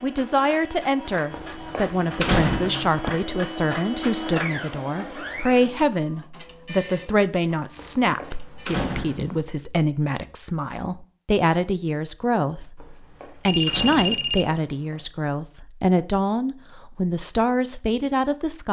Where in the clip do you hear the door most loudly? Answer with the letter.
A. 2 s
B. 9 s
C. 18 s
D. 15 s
A.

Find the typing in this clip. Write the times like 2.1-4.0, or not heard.
not heard.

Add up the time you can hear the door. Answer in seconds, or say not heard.
6 s.